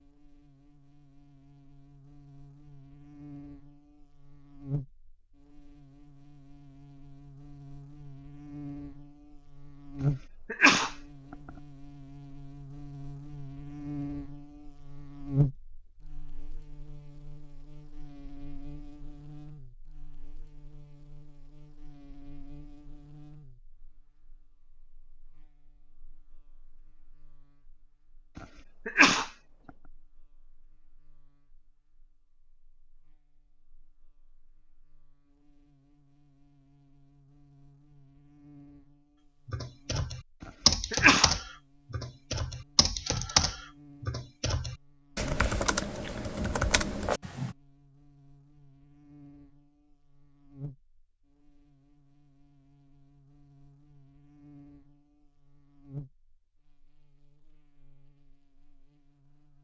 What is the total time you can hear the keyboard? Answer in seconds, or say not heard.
8 s.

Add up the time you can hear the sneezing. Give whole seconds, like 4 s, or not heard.
3 s.